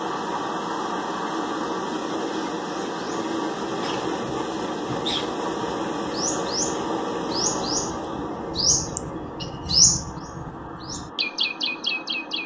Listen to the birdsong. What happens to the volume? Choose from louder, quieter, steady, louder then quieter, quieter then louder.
louder then quieter.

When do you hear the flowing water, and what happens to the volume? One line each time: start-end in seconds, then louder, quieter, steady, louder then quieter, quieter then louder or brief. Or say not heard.
0.0-12.4 quieter.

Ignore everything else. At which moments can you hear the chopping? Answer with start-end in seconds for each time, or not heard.
not heard.